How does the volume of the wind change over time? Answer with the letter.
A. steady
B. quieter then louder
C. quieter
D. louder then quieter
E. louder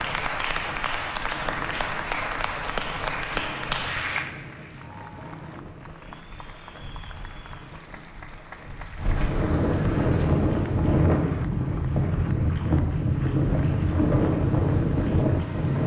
E.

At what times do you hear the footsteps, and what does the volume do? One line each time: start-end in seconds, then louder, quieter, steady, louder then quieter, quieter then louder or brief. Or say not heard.
not heard.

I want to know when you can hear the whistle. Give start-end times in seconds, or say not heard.
not heard.